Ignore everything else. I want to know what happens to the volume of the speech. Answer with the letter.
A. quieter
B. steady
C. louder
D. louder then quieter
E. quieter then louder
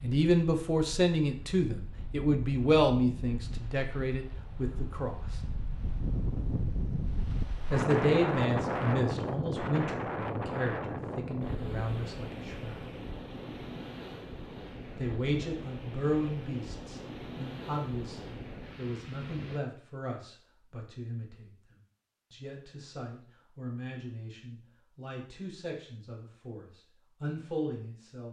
A.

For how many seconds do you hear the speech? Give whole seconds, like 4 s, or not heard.
24 s.